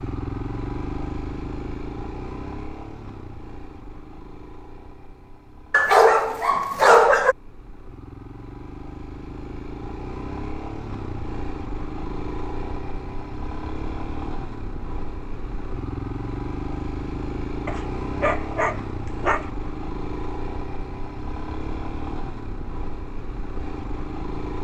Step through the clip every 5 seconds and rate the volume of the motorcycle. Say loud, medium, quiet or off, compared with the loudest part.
loud, medium, loud, loud, loud.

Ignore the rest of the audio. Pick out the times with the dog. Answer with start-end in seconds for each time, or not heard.
5.7-7.3, 17.6-19.5.